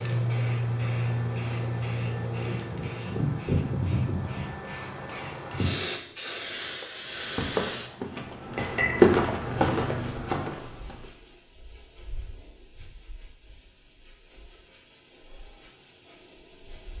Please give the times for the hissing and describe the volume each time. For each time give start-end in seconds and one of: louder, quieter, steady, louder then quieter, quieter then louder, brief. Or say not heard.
0.0-16.9 quieter.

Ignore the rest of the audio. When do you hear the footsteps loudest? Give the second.
9 s.